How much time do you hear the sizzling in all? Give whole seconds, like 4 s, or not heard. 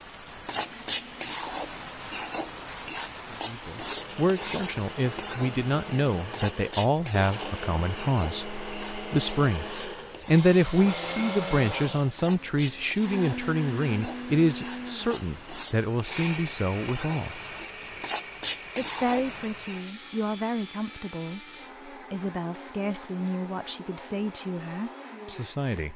20 s.